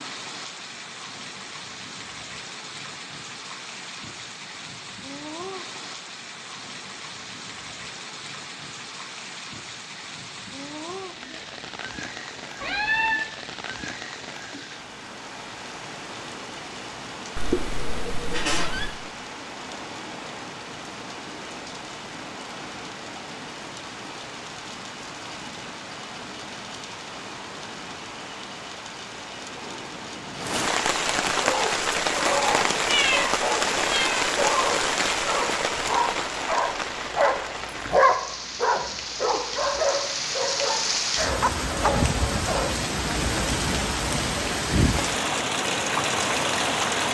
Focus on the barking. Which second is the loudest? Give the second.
38 s.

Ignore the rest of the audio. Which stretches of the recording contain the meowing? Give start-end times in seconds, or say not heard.
12.6-13.2, 17.4-18.9, 32.9-34.2.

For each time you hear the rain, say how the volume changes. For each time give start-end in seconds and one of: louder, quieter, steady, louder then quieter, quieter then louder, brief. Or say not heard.
0.0-47.0 louder.